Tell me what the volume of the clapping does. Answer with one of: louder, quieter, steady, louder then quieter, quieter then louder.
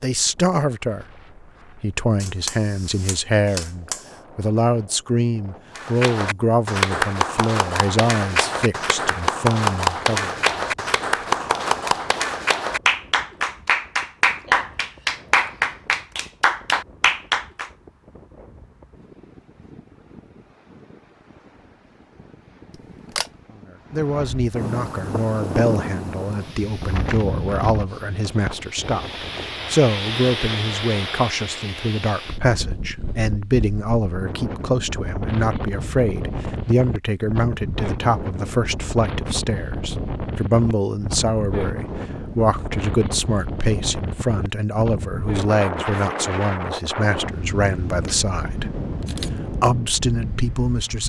steady.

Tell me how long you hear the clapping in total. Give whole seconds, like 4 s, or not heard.
12 s.